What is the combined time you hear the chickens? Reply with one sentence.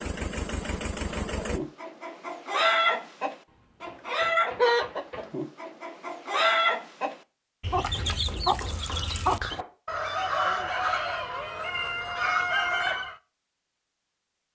You can hear the chickens for 12 seconds altogether.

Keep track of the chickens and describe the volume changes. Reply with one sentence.
The loudness of the chickens stays about the same.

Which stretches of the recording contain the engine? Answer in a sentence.
You can hear the engine from 0.0 to 1.6 s.